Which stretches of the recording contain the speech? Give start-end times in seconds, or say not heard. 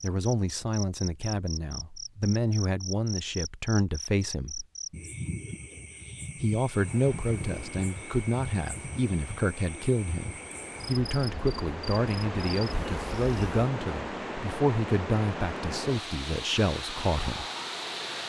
0.0-4.7, 6.3-17.4.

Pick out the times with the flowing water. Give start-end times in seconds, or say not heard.
6.7-18.2.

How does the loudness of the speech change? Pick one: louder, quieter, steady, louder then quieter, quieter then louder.
steady.